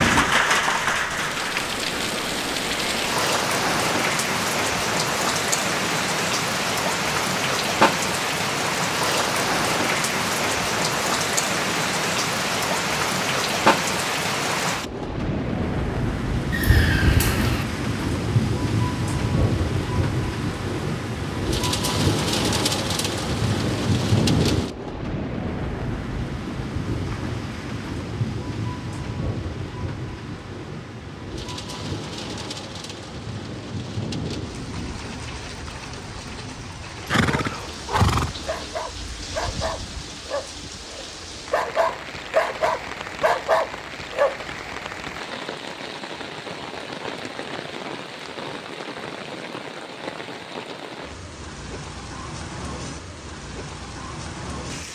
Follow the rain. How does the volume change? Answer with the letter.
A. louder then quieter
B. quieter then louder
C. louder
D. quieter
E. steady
D.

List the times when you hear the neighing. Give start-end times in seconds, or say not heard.
16.5-17.6, 37.0-38.6.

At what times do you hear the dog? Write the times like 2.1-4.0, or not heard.
37.2-44.4.